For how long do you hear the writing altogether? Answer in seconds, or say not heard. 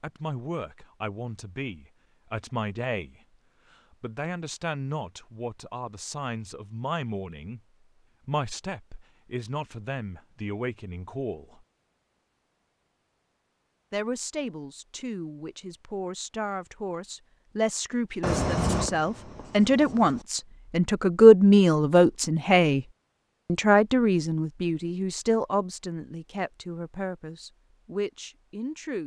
2 s.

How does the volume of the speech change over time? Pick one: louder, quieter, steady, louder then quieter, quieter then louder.
louder then quieter.